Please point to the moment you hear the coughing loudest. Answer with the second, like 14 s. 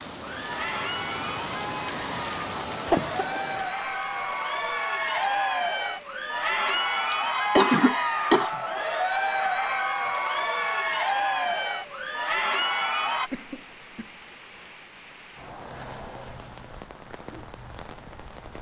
8 s.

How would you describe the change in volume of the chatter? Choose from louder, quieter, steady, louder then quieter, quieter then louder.
louder.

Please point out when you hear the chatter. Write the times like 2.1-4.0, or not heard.
0.1-13.3.